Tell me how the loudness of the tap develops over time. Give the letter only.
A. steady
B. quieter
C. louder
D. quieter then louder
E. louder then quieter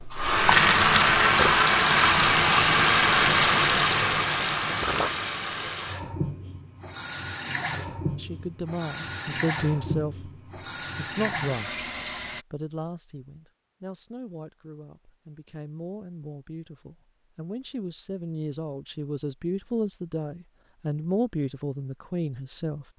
B.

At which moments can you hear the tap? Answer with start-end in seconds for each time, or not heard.
0.0-12.4.